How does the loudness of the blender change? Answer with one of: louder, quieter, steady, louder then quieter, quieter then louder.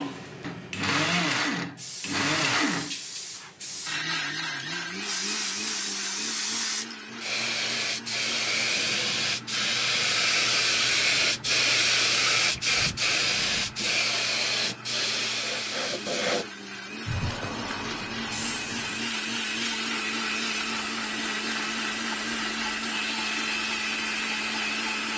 quieter then louder.